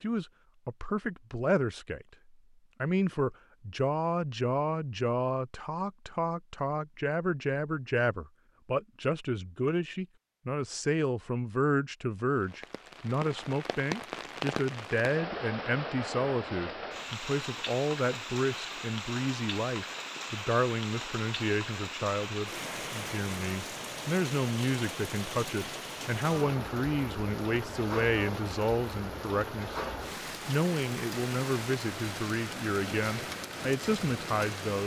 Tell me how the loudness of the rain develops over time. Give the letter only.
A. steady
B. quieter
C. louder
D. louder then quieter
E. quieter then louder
A.